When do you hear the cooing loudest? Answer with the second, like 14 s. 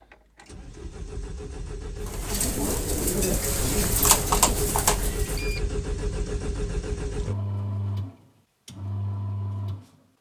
4 s.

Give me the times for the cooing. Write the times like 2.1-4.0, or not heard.
2.0-5.5.